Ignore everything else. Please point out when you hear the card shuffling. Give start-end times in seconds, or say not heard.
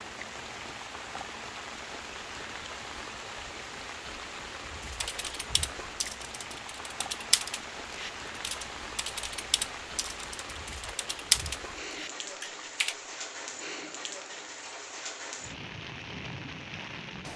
not heard.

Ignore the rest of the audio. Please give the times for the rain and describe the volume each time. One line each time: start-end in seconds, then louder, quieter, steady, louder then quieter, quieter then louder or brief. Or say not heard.
0.0-17.3 steady.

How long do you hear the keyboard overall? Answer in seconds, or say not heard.
8 s.